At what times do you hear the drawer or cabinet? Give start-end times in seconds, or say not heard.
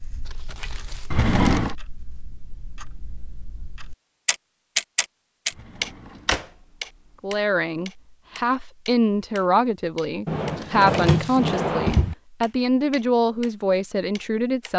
1.1-1.8, 5.5-6.5, 10.2-12.2.